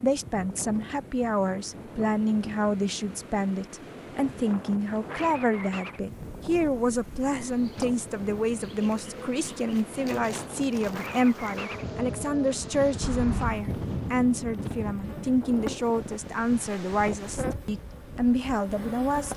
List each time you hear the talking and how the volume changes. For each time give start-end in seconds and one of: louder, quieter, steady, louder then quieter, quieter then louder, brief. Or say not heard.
0.0-19.3 steady.